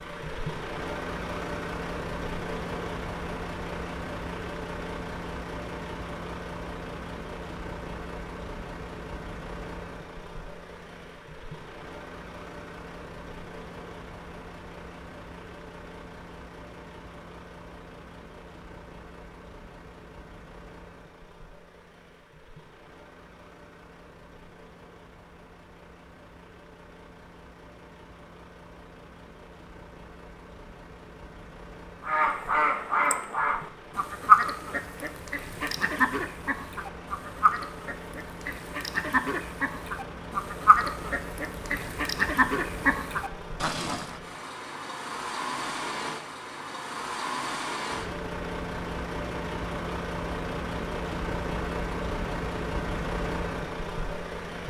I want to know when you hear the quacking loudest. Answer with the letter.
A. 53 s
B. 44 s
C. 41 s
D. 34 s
D.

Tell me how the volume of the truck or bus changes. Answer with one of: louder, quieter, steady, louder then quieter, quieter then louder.
quieter then louder.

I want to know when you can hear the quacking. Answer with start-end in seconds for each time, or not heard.
32.0-44.2.